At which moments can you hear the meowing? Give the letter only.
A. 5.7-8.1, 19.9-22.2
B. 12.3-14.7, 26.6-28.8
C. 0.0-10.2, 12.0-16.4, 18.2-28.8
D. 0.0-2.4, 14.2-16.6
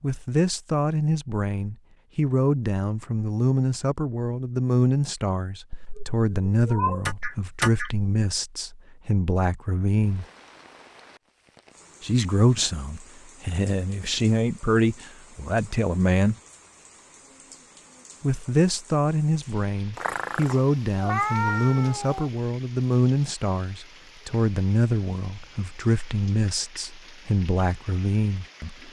A.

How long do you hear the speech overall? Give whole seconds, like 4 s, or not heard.
25 s.